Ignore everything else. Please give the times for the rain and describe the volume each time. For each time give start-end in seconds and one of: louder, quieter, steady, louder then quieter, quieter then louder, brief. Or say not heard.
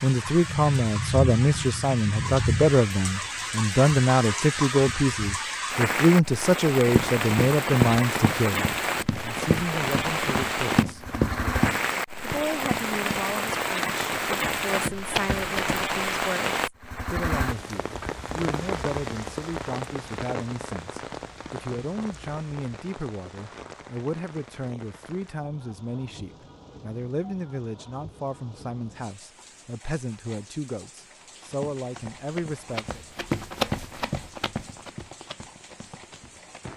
0.0-36.7 quieter.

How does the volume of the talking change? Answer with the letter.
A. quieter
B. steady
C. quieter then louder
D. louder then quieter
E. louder
A.